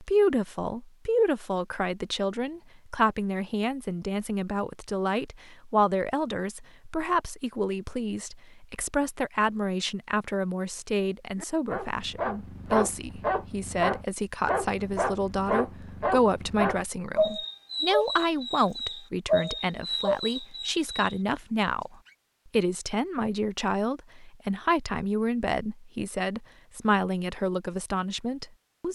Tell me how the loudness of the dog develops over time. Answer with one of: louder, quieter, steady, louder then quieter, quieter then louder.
steady.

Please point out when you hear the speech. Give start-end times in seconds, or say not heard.
0.0-21.9, 22.5-28.8.